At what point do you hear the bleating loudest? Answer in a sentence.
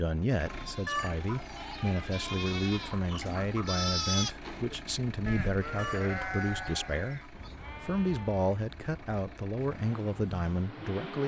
The volume of the bleating peaks at 4 seconds.